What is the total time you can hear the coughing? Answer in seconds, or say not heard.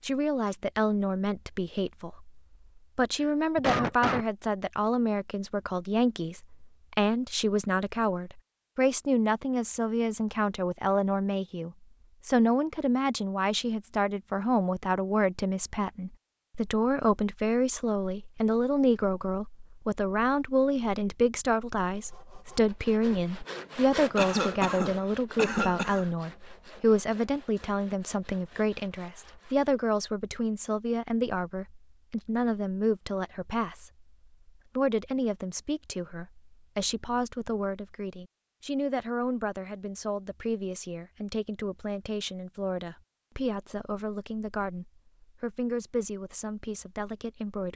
3 s.